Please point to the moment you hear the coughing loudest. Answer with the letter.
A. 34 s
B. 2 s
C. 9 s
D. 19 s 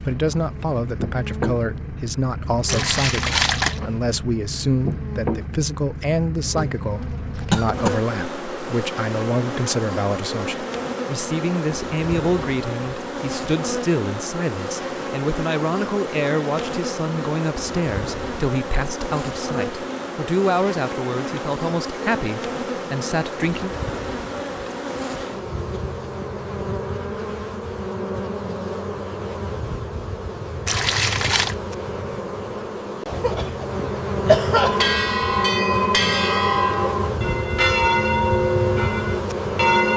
A.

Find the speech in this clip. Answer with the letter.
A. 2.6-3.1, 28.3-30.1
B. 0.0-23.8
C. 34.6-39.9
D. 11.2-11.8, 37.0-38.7
B.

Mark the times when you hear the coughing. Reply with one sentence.
You can hear the coughing from 7.5 to 8.1 s and from 33.2 to 35.0 s.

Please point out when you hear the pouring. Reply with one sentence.
The pouring can be heard from 2.6 to 3.8 s and from 30.6 to 31.6 s.